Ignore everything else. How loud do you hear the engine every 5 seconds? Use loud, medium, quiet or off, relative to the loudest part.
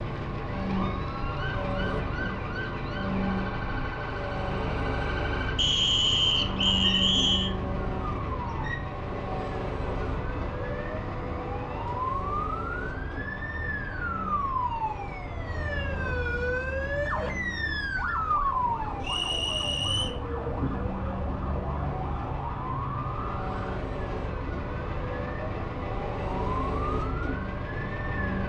loud, loud, medium, medium, medium, loud.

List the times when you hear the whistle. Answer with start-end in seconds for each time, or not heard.
5.5-7.5, 19.0-20.1.